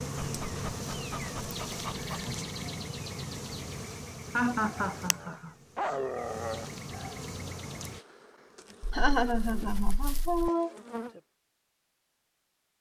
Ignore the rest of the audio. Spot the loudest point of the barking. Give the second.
6 s.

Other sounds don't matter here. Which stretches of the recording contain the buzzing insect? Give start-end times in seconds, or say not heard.
0.0-11.2.